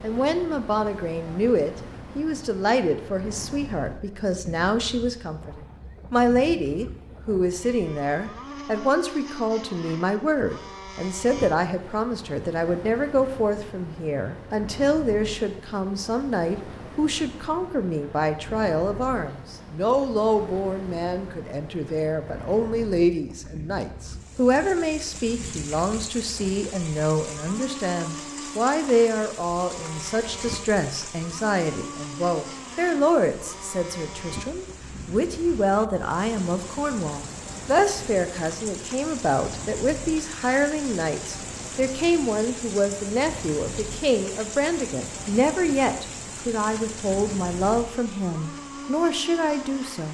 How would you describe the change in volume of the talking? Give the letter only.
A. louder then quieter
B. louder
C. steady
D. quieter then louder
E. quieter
C.